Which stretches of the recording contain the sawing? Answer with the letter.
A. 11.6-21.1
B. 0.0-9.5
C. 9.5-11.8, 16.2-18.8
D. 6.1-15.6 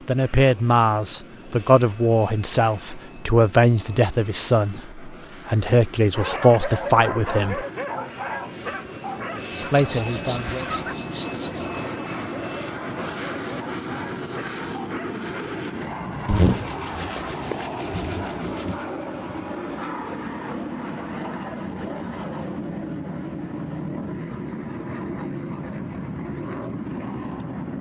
C.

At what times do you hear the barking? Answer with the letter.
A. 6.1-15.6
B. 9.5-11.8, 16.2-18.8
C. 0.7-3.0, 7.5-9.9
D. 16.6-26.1
A.